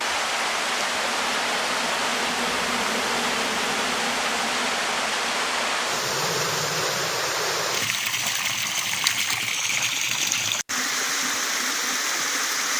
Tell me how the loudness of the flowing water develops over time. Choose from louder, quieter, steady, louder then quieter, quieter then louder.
steady.